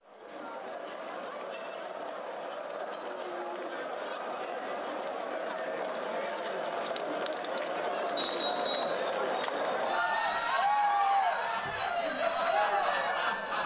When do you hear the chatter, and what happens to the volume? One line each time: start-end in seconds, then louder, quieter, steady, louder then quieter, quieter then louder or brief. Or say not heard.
0.0-13.6 louder.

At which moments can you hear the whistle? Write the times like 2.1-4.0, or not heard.
8.2-9.0.